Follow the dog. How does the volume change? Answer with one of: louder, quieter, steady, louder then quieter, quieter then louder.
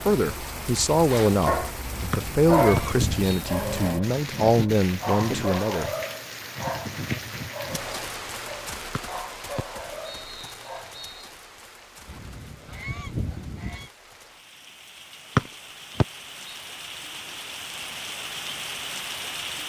quieter.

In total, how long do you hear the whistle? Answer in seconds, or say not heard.
5 s.